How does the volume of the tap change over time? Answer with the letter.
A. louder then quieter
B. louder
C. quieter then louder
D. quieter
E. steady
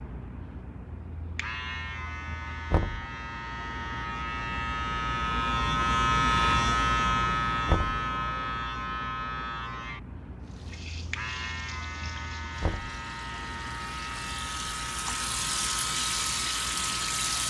B.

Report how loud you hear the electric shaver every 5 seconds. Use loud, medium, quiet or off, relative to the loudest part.
medium, loud, medium, medium.